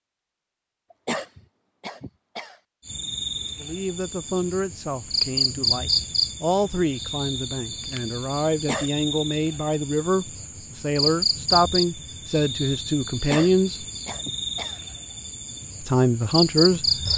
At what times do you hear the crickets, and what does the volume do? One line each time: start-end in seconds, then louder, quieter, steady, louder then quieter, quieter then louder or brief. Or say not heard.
2.9-17.1 steady.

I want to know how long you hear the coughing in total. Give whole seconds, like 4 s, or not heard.
4 s.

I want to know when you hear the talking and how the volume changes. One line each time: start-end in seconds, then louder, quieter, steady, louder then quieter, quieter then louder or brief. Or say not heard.
3.6-13.8 louder
15.8-17.1 brief.